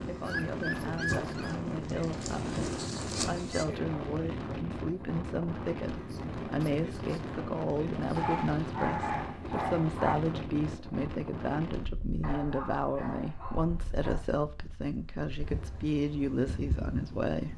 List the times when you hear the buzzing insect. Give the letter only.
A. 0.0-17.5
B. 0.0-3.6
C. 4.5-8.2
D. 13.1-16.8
B.